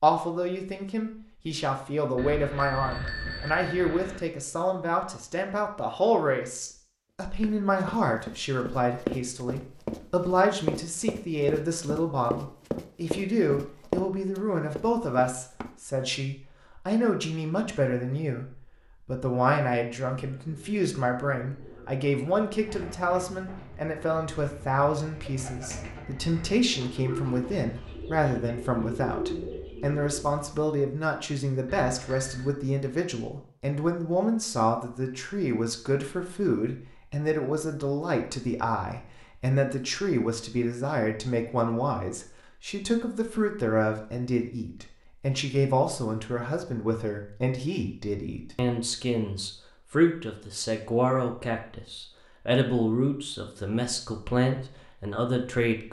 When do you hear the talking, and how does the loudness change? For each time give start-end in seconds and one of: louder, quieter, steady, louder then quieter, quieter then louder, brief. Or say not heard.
0.0-55.8 steady.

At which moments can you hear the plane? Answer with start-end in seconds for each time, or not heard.
not heard.